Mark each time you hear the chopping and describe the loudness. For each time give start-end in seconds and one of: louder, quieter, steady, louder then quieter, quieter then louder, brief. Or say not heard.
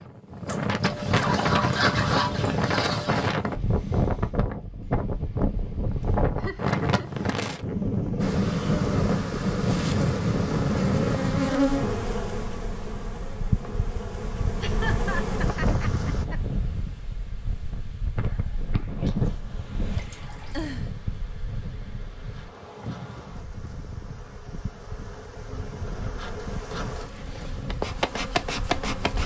not heard.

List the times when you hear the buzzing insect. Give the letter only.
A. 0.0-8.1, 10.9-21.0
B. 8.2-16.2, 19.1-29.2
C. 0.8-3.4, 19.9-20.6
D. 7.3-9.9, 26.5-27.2
B.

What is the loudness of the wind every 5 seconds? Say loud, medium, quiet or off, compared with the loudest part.
loud, loud, loud, medium, quiet, quiet.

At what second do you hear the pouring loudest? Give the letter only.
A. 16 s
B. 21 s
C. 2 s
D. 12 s
C.